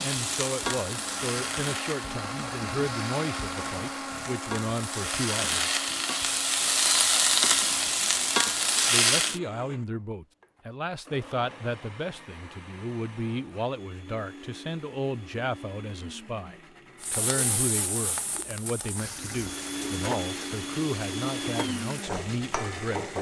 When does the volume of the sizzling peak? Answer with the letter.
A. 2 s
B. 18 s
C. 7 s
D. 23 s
C.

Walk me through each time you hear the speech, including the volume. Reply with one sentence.
The speech can be heard from 0.0 to 5.7 s, getting quieter then louder; and from 8.9 to 23.1 s, at a steady volume.